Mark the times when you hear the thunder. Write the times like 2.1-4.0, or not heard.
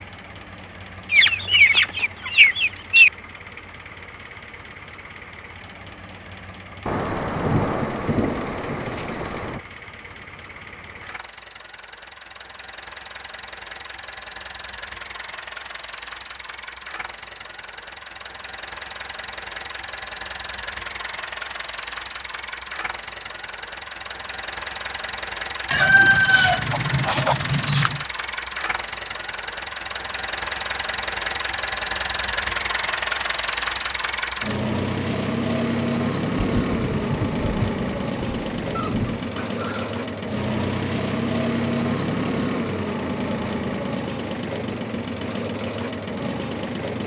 6.8-9.6, 36.6-39.3.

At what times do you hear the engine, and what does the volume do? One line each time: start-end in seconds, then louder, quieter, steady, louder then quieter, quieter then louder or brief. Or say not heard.
0.0-47.0 louder.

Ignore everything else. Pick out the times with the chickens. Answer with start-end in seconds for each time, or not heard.
1.1-3.1, 25.7-28.0, 38.8-40.0.